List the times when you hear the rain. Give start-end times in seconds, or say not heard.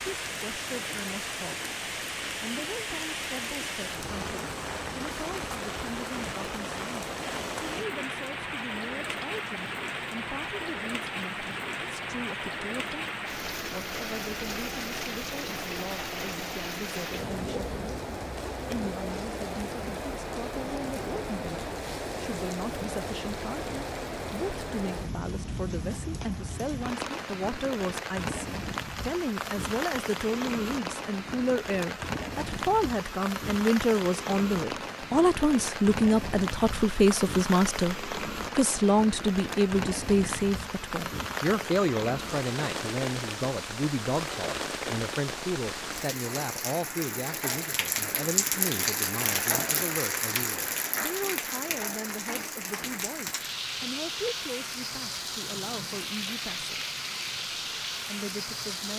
0.0-58.9.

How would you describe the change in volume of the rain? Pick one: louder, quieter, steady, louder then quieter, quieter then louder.
steady.